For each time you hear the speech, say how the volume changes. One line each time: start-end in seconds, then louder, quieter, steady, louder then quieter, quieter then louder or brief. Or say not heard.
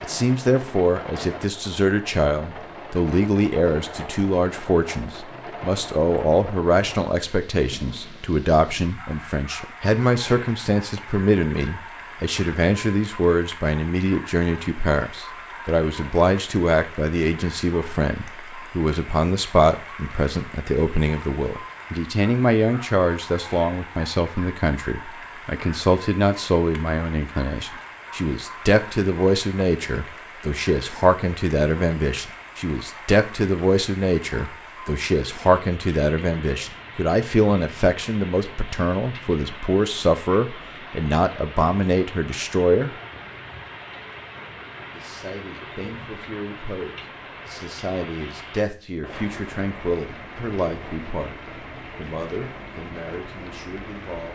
0.0-42.9 steady
44.9-51.4 louder
52.0-54.3 brief.